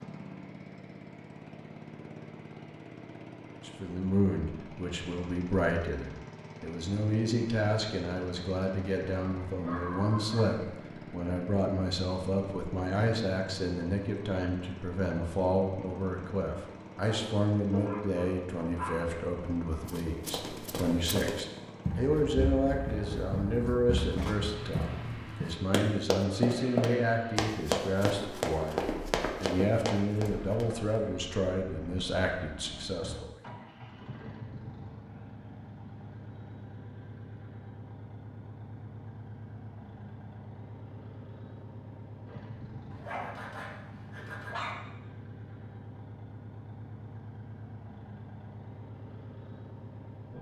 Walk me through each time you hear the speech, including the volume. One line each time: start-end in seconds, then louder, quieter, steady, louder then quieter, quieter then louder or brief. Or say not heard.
3.6-33.4 steady.